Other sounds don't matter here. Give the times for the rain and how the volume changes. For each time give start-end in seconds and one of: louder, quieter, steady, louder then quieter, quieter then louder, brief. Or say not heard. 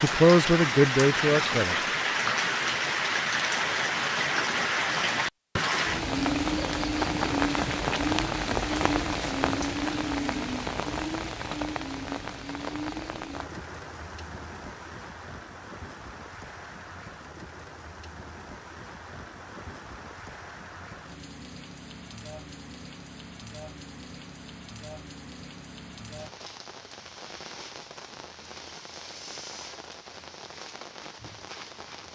0.0-32.1 quieter.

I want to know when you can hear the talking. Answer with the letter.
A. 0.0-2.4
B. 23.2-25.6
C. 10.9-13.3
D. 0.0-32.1
A.